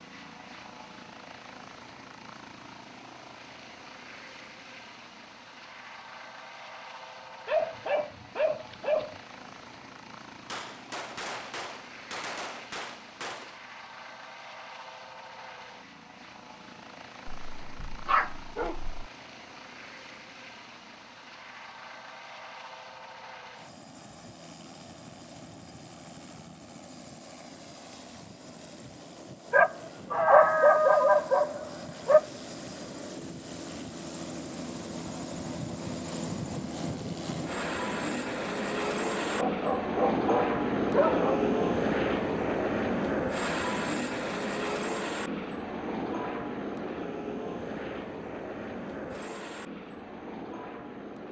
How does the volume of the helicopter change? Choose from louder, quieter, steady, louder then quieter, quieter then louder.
louder.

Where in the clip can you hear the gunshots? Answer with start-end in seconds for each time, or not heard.
10.4-13.6.